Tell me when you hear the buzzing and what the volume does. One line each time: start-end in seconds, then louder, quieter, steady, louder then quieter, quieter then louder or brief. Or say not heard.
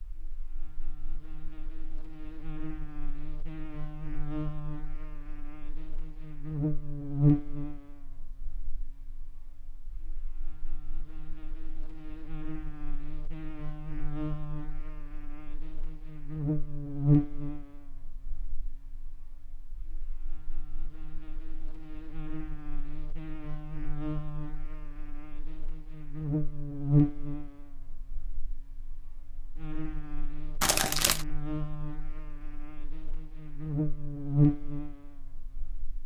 0.0-36.0 quieter then louder.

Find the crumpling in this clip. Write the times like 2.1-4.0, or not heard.
30.6-31.2.